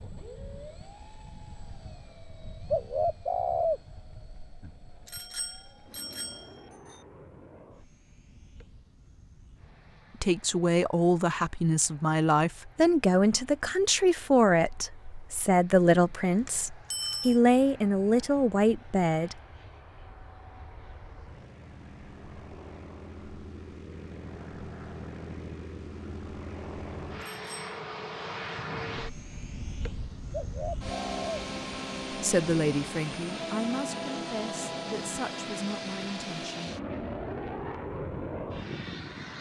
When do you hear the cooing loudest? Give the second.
4 s.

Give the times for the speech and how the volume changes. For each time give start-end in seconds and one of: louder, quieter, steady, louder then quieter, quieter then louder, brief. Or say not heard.
10.2-19.4 steady
32.2-36.7 quieter.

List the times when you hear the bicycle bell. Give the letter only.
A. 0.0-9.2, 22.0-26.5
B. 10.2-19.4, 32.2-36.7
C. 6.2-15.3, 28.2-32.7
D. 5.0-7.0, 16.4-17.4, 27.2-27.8
D.